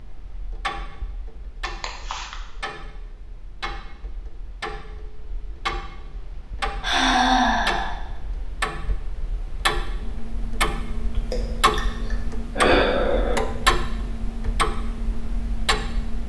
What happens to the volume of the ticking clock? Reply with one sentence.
The volume of the ticking clock goes up.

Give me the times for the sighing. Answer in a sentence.
The sighing can be heard from 1.6 to 2.4 s, from 6.8 to 8.0 s and from 11.2 to 13.4 s.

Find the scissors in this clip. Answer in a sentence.
The scissors can't be heard in this clip.